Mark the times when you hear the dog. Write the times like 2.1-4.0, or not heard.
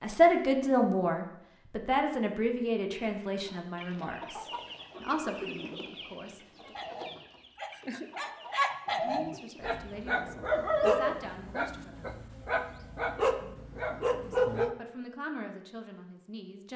6.7-14.8.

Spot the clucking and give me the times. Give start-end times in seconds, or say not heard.
3.2-9.9.